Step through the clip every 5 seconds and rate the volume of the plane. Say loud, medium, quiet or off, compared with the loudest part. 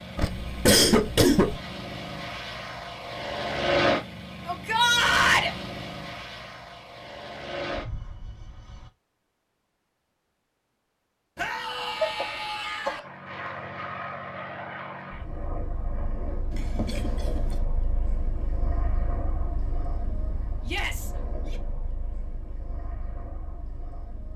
loud, medium, medium, medium, quiet.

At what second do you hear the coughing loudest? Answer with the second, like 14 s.
1 s.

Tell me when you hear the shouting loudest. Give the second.
5 s.